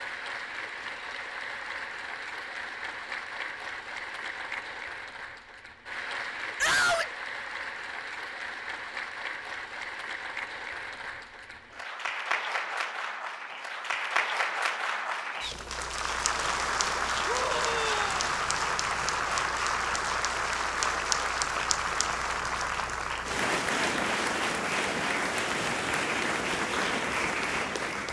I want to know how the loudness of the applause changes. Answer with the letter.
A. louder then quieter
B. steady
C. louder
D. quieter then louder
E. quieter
C.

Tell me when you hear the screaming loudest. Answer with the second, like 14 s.
7 s.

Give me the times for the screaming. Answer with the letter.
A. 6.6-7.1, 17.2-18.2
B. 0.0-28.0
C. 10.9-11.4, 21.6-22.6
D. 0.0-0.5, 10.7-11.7
A.